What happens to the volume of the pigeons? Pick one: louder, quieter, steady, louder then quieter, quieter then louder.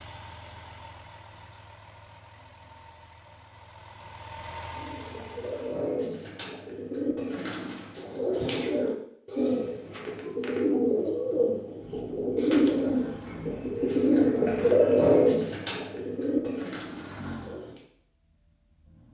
louder.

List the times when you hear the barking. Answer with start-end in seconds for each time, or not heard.
not heard.